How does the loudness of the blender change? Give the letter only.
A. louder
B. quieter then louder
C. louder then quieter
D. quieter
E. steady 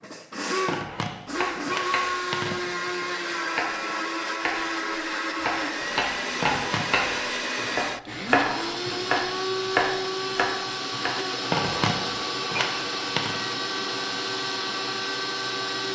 E.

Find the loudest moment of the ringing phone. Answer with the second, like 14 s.
12 s.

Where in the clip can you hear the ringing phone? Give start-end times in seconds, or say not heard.
0.7-2.6, 6.4-7.0, 11.5-13.4.